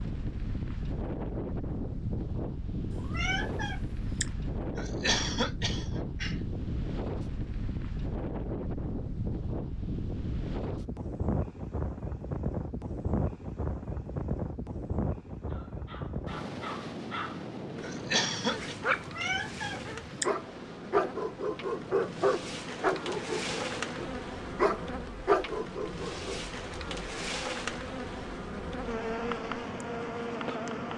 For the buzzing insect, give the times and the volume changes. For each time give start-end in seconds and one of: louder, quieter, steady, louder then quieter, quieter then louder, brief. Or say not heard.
17.8-30.9 louder.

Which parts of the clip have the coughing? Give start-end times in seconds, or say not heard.
4.8-6.5, 17.8-18.8.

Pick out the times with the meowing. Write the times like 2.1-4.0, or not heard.
2.9-4.3, 18.9-20.3.